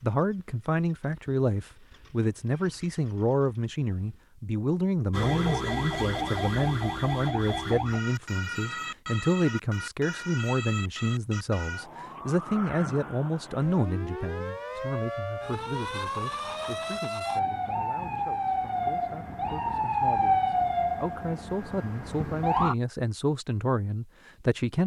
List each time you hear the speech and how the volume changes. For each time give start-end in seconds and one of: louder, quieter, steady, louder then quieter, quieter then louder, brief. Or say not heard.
0.0-24.8 quieter then louder.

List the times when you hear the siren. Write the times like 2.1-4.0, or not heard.
5.1-22.8.